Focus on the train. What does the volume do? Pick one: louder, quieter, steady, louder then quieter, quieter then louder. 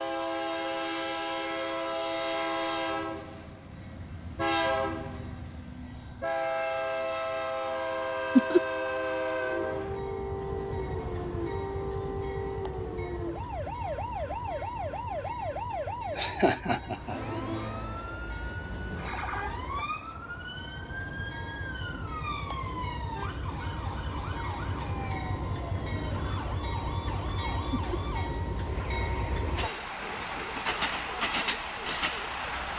quieter then louder.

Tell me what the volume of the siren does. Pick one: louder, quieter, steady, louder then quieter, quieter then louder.
quieter.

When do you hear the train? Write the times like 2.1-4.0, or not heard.
0.0-32.7.